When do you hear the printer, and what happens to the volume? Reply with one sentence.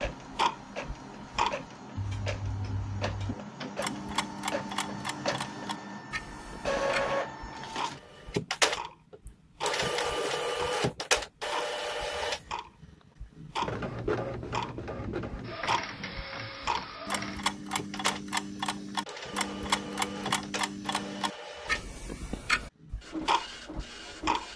The printer can be heard from 0.0 to 24.5 s, getting louder then quieter.